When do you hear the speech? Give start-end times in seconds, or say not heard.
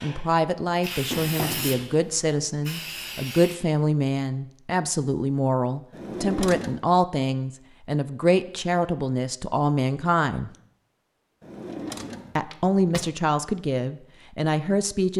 0.0-10.5, 12.3-15.1.